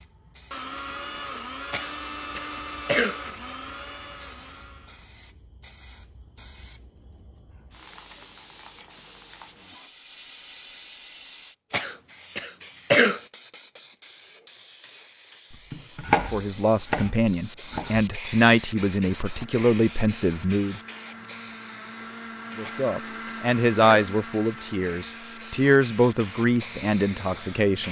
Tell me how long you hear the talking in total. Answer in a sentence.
You can hear the talking for 10 seconds altogether.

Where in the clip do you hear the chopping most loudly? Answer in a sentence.
The loudest moment of the chopping is at 16 seconds.